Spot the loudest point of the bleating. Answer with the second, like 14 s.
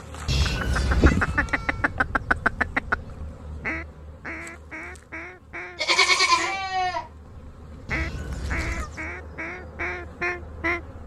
6 s.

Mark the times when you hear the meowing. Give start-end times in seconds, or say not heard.
0.2-1.2, 7.8-8.9.